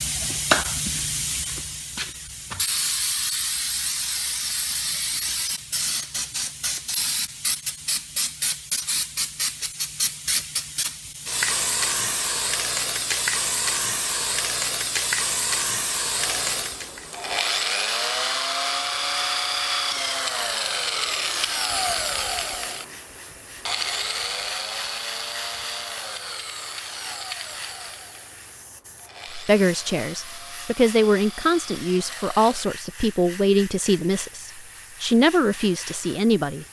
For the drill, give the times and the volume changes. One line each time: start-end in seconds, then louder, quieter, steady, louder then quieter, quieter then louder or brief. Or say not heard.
16.1-32.7 quieter.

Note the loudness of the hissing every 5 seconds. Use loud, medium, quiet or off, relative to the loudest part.
loud, loud, loud, loud, quiet, quiet, quiet, quiet.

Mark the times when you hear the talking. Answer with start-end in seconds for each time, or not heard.
29.3-36.6.